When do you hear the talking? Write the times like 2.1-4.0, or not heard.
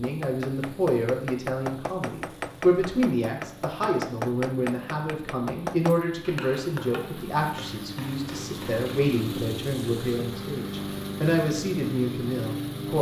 0.0-12.9.